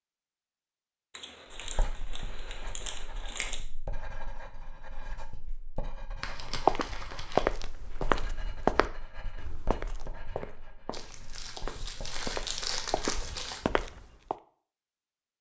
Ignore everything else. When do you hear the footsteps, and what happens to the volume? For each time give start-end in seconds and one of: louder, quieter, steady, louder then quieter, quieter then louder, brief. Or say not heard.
6.6-14.3 quieter then louder.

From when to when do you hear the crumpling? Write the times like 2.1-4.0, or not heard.
1.1-3.6, 6.2-7.5, 10.9-13.7.